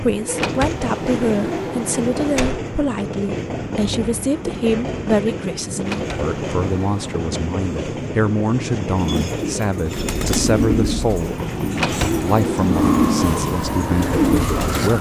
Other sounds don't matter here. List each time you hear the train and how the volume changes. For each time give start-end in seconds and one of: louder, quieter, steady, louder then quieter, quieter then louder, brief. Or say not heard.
0.0-14.9 steady.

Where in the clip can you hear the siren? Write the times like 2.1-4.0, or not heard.
12.7-14.9.